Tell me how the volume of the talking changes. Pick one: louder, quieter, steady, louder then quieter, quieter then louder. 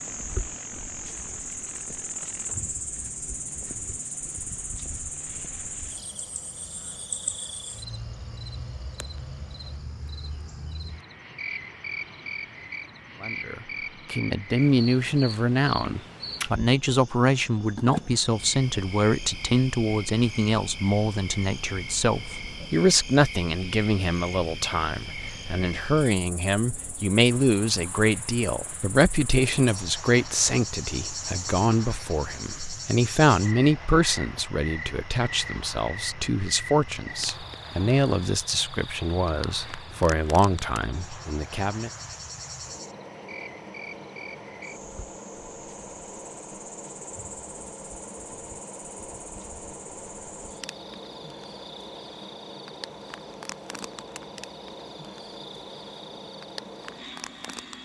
steady.